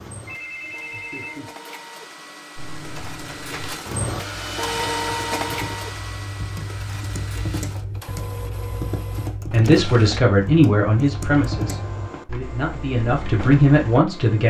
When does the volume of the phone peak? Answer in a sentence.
The volume of the phone peaks at 1 second.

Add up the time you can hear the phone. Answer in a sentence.
You can hear the phone for 2 seconds altogether.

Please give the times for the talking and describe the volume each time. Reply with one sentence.
The talking can be heard from 9.5 to 14.4 s, getting quieter then louder.